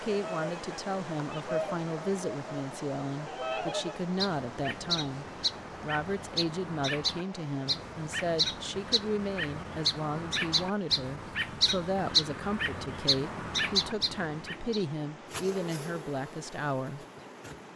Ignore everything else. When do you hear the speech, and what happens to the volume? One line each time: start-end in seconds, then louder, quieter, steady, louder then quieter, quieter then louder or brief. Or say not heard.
0.0-17.1 steady.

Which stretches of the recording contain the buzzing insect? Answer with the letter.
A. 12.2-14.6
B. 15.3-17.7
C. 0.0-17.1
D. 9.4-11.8
B.